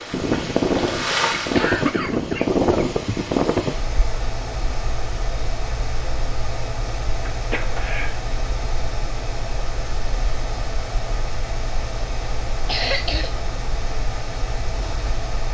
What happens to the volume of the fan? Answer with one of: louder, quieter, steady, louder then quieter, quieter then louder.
quieter.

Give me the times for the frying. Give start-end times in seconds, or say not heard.
0.0-1.8.